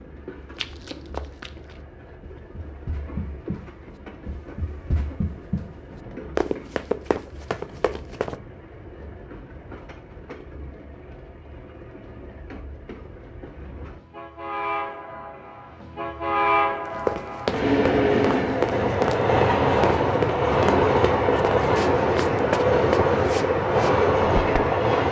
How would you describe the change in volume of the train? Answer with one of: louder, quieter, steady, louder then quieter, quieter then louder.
louder.